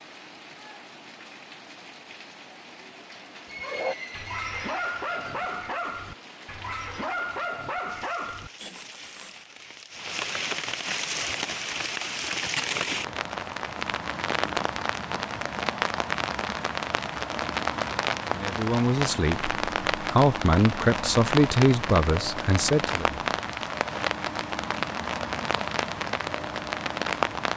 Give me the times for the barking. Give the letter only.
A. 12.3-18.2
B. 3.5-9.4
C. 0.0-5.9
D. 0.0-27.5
B.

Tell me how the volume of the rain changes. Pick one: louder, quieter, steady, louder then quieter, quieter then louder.
louder.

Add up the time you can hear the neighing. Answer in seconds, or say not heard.
2 s.